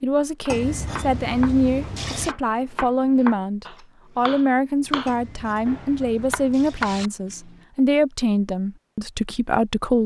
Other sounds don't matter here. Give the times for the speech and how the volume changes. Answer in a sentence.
You can hear the speech from 0.0 to 10.0 s, at a steady volume.